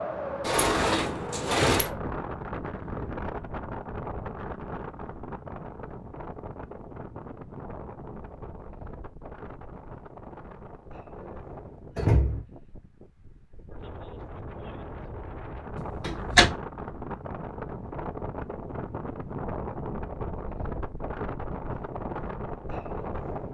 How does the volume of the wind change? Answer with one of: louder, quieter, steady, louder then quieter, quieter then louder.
quieter then louder.